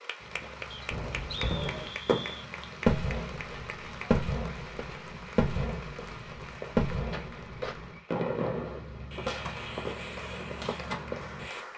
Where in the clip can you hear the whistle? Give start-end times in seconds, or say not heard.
0.7-2.5.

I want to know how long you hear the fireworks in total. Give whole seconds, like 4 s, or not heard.
11 s.